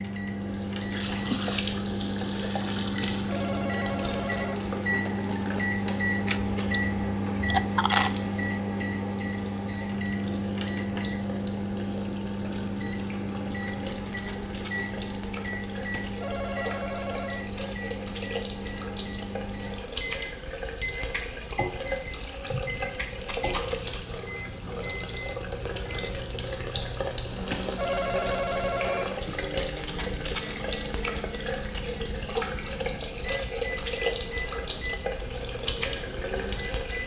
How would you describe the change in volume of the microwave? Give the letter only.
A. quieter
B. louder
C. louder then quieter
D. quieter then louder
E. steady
A.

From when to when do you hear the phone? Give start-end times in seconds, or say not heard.
3.1-4.6, 15.9-17.4, 27.5-29.1.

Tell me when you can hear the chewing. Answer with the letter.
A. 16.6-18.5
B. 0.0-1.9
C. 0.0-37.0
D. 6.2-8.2
D.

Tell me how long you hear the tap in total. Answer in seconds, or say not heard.
37 s.